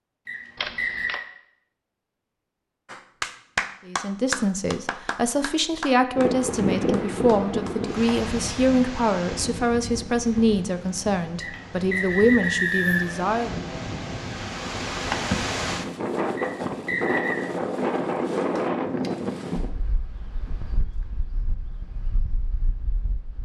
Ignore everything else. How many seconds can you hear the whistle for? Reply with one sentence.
The whistle can be heard for 4 seconds in total.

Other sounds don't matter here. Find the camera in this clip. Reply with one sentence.
The camera can be heard from 0.6 to 1.2 s and from 18.4 to 19.1 s.